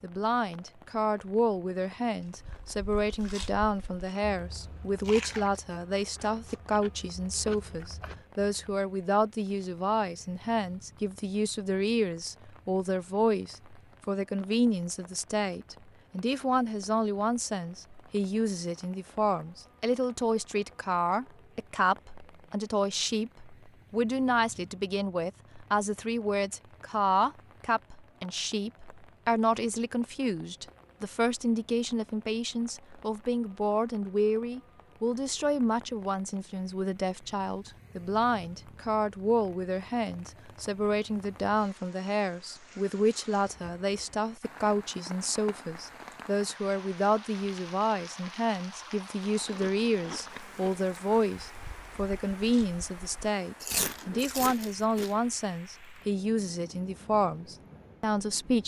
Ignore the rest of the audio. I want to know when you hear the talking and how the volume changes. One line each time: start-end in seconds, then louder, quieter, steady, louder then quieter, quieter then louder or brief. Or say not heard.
0.0-58.6 steady.